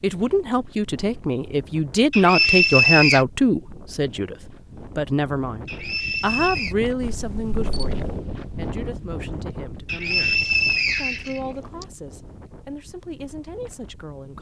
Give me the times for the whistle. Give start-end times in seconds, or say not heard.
2.1-3.2, 5.7-6.8, 9.8-11.8.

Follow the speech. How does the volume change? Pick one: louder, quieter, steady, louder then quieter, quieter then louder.
quieter.